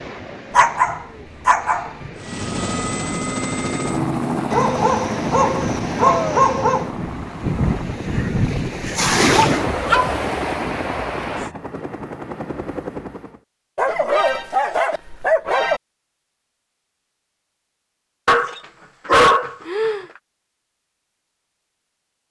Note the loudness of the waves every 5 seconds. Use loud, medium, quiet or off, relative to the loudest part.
quiet, loud, loud, off, off.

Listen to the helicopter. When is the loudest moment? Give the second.
4 s.